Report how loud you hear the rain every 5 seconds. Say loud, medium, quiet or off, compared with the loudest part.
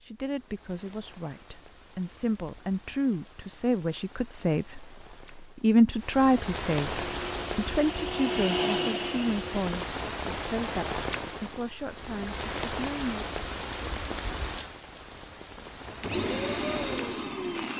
quiet, loud, loud, medium.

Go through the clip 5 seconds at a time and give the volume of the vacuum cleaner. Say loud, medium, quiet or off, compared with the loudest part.
off, loud, off, loud.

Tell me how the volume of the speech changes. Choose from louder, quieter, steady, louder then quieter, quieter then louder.
louder then quieter.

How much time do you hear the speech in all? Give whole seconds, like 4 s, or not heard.
13 s.